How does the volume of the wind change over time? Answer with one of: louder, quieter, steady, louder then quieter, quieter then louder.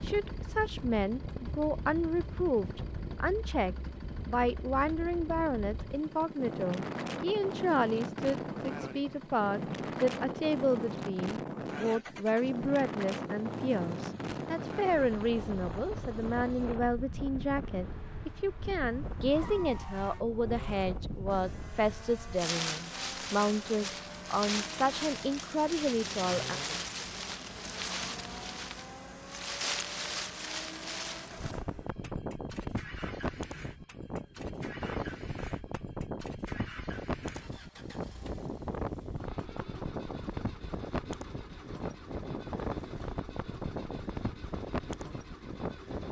steady.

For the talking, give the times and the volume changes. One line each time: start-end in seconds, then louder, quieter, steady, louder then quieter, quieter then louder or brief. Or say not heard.
0.0-26.6 steady.